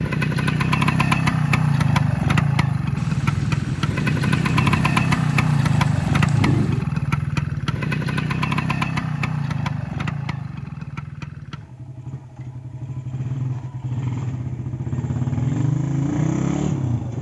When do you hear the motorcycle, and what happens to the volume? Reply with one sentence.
You can hear the motorcycle from 0.0 to 17.1 s, getting quieter then louder.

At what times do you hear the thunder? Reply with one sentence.
The thunder can be heard from 3.0 to 6.8 s.